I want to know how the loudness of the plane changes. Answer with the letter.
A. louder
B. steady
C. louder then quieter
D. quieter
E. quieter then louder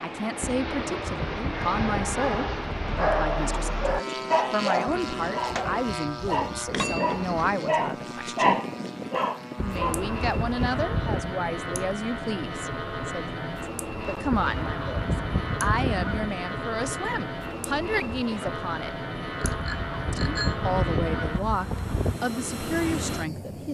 B.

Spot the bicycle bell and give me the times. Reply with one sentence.
You can hear the bicycle bell from 6.7 to 7.2 s and from 19.4 to 20.6 s.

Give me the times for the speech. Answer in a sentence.
The speech can be heard from 0.0 to 8.6 s, from 9.6 to 18.9 s and from 20.1 to 23.6 s.